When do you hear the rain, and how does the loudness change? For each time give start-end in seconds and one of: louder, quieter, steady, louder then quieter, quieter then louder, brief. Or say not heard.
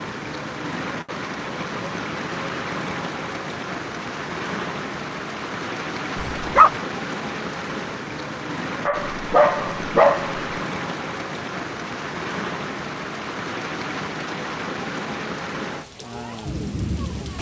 0.0-17.3 steady.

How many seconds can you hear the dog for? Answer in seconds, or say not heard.
2 s.